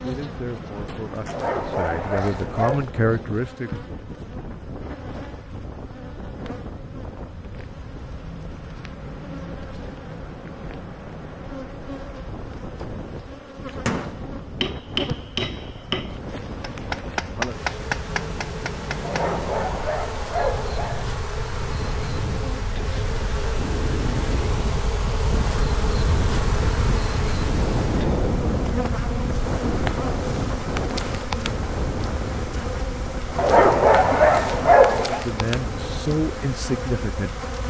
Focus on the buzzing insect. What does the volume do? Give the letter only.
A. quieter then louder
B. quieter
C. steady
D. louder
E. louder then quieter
D.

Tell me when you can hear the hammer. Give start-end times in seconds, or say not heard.
13.8-19.3.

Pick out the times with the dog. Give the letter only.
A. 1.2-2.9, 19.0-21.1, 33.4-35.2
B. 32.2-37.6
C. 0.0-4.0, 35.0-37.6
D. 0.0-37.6
A.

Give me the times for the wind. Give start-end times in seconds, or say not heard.
0.0-37.6.